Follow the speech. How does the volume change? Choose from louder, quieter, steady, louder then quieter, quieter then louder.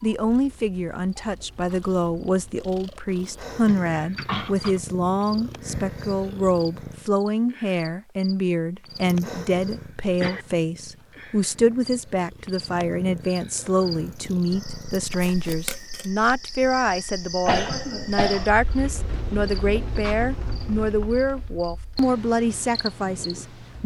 steady.